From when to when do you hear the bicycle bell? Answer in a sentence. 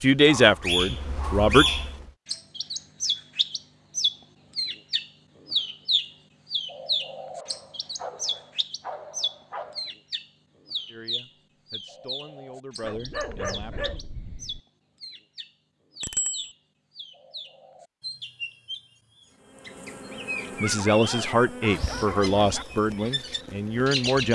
You can hear the bicycle bell from 16.0 to 16.5 s.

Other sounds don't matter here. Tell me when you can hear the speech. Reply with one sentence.
The speech can be heard from 0.0 to 1.6 s, from 10.8 to 13.9 s and from 20.6 to 24.3 s.